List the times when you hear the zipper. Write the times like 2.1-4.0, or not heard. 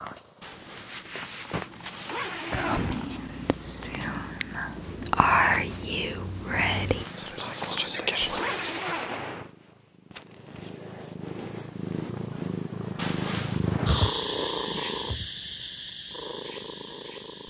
0.4-3.1, 6.8-9.2, 12.9-13.8.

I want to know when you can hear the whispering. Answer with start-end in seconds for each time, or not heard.
2.5-9.1.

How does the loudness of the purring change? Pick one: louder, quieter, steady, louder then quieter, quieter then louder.
louder.